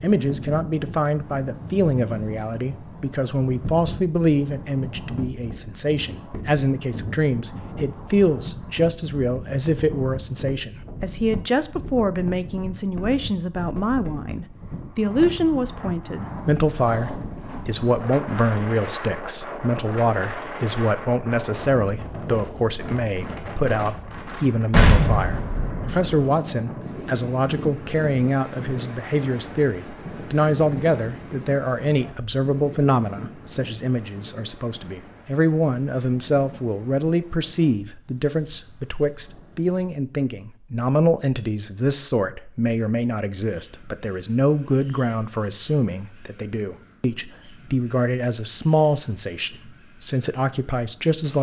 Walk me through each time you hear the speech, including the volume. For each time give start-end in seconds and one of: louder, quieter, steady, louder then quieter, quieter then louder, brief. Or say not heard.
0.0-51.3 steady.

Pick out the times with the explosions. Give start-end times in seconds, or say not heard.
24.7-26.1.